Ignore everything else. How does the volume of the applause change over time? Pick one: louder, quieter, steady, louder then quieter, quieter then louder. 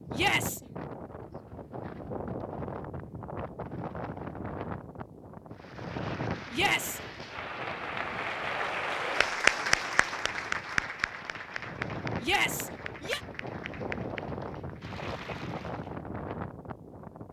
louder then quieter.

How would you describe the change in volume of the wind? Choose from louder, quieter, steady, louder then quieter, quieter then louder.
quieter then louder.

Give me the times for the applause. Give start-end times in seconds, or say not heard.
5.5-15.9.